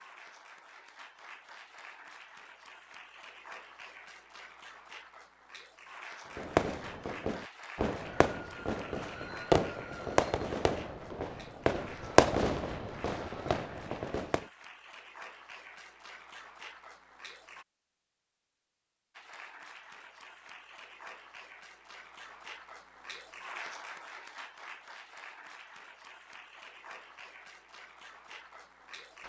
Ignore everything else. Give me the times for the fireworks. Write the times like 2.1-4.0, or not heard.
6.3-14.4.